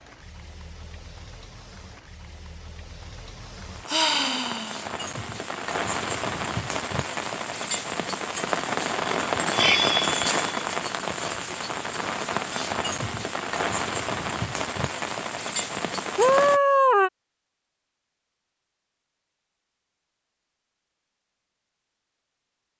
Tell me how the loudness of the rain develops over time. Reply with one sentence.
The loudness of the rain goes up.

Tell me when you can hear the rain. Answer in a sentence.
The rain can be heard from 0.0 to 16.6 s.